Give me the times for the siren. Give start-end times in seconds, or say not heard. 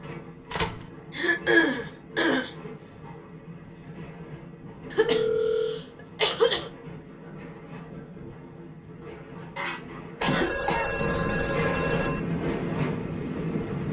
not heard.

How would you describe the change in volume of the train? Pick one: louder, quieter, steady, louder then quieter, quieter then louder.
louder.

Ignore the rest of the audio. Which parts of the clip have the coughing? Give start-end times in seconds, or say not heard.
1.1-2.5, 4.9-6.7, 9.6-11.1.